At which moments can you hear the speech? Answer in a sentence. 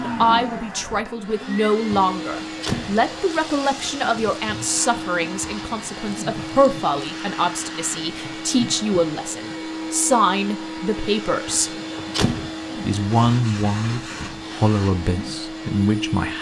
The speech can be heard from 0.0 to 11.7 s and from 12.8 to 16.3 s.